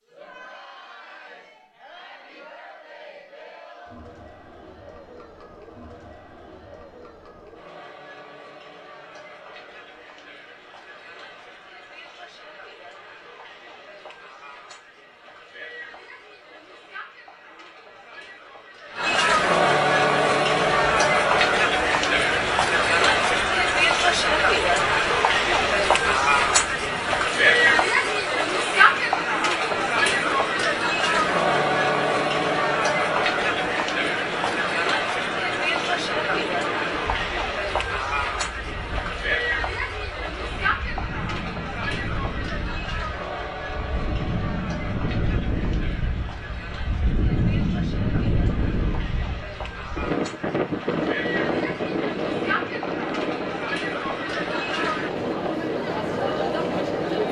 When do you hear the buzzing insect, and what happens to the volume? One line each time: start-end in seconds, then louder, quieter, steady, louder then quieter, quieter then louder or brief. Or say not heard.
not heard.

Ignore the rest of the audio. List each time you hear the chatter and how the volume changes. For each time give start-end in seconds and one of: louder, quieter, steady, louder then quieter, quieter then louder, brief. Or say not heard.
0.1-57.2 louder then quieter.